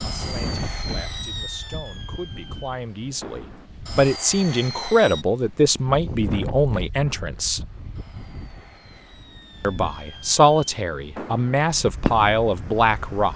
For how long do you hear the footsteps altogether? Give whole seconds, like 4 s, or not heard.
not heard.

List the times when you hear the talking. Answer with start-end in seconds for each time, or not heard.
0.0-7.6, 9.6-13.3.